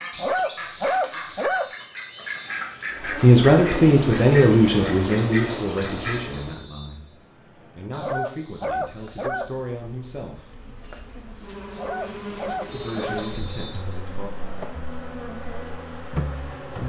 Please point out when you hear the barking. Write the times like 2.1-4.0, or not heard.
0.1-1.8, 7.9-9.6, 11.7-13.3.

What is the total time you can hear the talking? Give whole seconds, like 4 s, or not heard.
9 s.